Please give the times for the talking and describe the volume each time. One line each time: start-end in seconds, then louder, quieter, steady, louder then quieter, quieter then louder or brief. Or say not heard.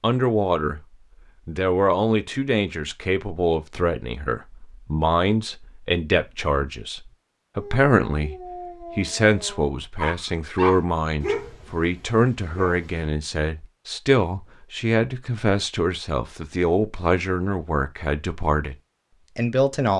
0.0-0.8 brief
1.4-18.8 steady
19.4-19.9 brief.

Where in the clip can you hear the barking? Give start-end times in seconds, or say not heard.
7.5-13.1.